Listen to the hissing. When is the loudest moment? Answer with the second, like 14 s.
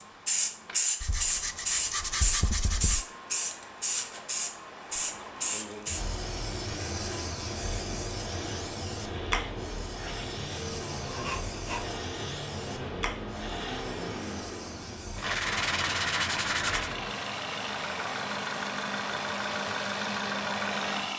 1 s.